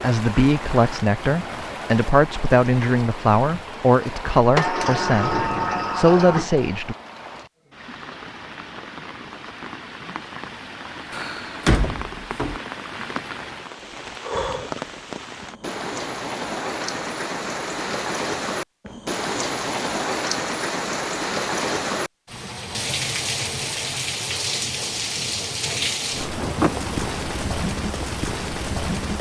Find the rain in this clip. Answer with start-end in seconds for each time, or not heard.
0.0-29.1.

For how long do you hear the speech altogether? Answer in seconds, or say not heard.
7 s.